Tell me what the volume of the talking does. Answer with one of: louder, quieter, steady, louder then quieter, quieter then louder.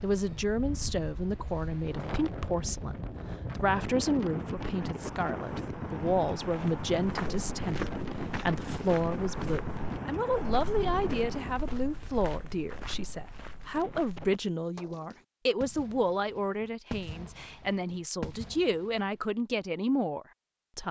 steady.